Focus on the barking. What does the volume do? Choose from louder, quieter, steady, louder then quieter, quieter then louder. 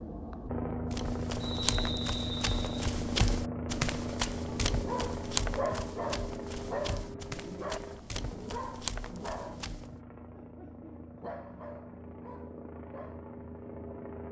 quieter.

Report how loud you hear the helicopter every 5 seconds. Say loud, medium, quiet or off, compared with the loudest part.
loud, medium, medium.